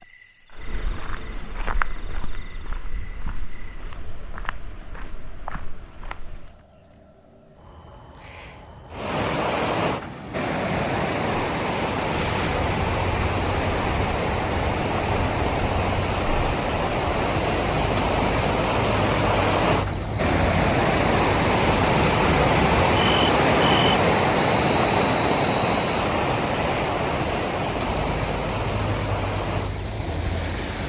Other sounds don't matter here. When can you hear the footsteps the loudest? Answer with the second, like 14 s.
2 s.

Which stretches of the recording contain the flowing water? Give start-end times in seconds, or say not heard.
8.9-30.8.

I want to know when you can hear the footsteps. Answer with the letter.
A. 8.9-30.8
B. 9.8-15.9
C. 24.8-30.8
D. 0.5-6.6
D.